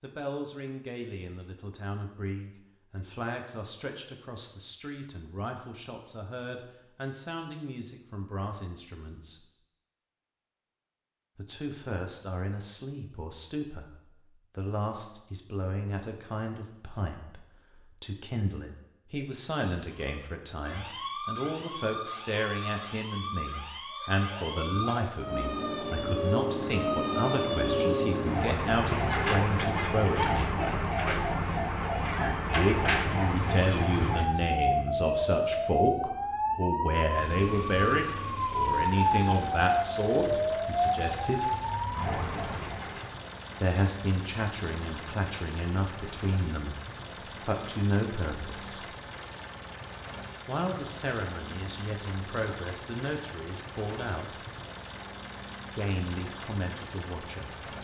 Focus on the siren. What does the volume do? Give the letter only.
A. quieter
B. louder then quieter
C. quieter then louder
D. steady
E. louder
E.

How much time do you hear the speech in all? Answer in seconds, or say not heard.
49 s.